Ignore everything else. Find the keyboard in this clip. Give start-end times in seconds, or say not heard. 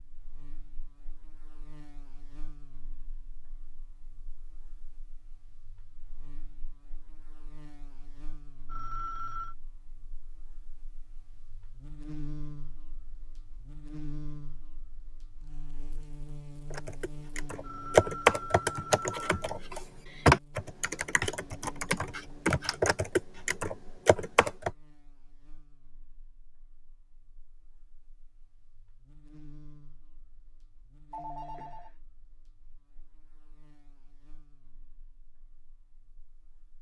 16.7-24.7.